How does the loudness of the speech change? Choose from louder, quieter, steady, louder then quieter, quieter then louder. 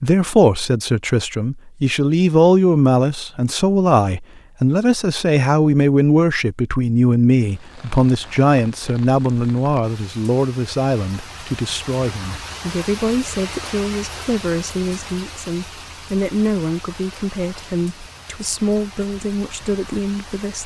quieter.